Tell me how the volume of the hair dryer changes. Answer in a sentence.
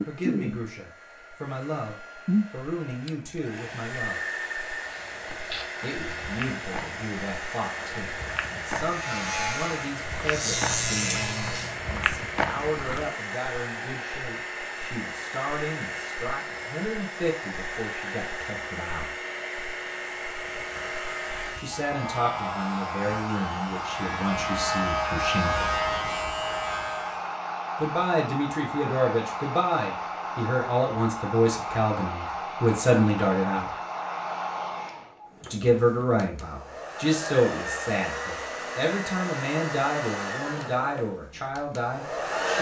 The loudness of the hair dryer stays about the same.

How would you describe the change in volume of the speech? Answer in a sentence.
The loudness of the speech goes up.